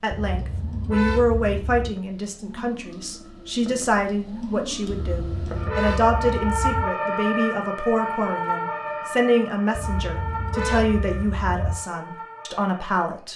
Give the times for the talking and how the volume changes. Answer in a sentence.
The talking can be heard from 0.0 to 13.3 s, at a steady volume.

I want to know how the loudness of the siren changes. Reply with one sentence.
The loudness of the siren goes up, then down.